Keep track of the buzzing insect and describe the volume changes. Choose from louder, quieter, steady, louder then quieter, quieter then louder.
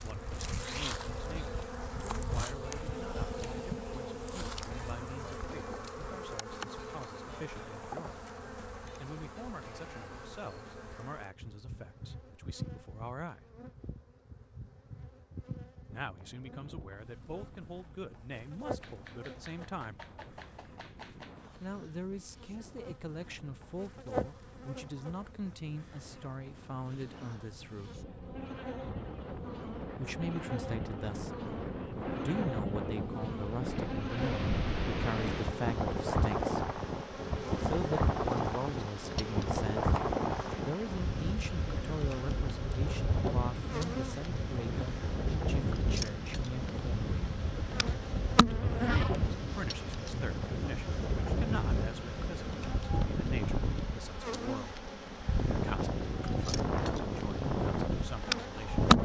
quieter then louder.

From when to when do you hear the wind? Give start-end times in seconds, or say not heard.
15.8-58.9.